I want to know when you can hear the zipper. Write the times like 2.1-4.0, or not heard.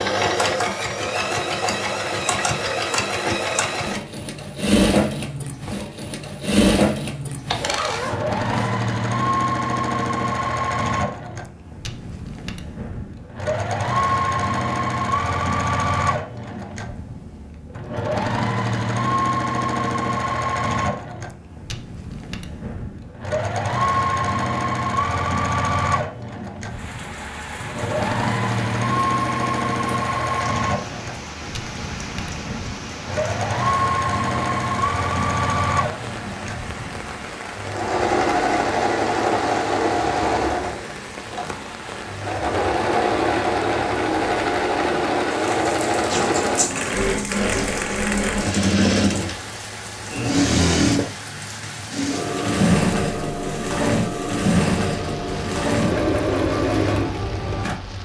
7.5-8.8.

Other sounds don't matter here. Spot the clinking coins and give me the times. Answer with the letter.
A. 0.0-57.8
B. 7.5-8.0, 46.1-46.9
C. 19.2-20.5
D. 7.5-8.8
B.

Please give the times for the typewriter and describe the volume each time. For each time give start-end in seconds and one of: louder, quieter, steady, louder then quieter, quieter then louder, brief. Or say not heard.
not heard.